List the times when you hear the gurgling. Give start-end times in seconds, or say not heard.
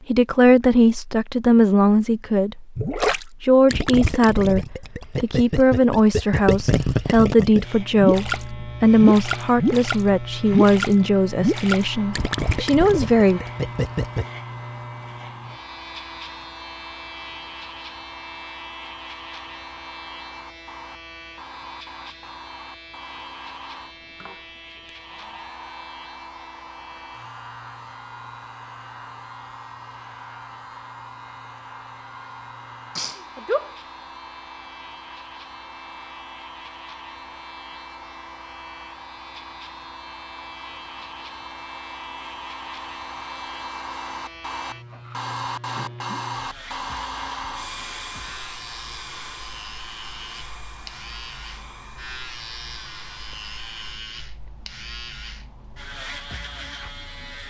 2.8-14.2.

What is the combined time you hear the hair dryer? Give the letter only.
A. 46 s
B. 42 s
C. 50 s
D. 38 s
B.